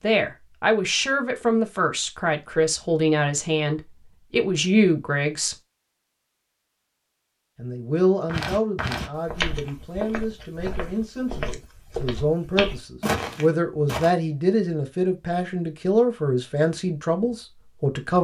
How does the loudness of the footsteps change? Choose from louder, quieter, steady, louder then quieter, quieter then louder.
quieter then louder.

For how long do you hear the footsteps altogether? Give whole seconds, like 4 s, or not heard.
6 s.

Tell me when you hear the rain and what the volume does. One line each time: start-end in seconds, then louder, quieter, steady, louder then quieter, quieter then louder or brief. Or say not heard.
not heard.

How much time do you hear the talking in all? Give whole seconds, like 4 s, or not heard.
16 s.